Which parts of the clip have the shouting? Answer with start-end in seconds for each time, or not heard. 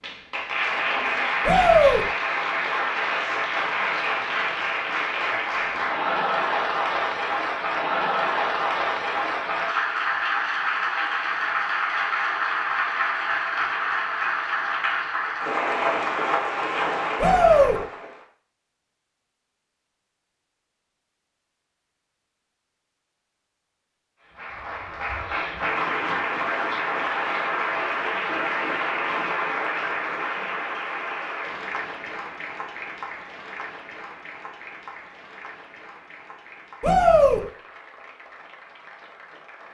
1.4-2.0, 17.2-17.8, 36.8-37.4.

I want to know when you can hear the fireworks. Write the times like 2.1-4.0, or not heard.
not heard.